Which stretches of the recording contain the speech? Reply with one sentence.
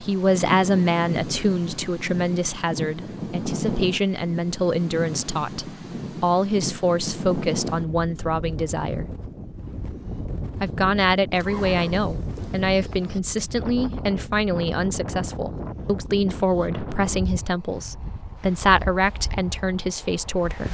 You can hear the speech from 0.0 to 9.1 s and from 10.6 to 20.6 s.